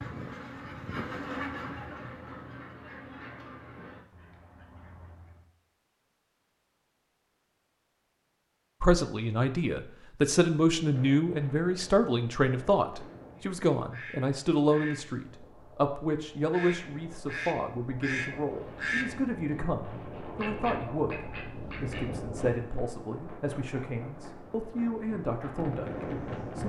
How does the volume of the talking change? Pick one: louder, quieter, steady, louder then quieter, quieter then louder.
quieter.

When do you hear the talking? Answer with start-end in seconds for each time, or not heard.
8.8-26.6.